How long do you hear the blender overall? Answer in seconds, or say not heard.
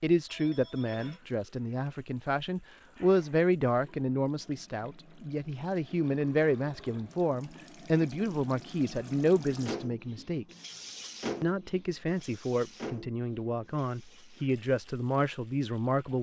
not heard.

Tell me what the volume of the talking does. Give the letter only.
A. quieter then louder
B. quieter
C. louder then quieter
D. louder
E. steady
E.